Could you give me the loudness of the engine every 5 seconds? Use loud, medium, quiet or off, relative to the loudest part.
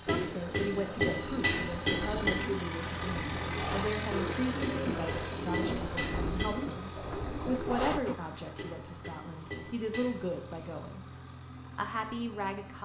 loud, medium, medium.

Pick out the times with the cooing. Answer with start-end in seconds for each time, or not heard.
0.2-8.2.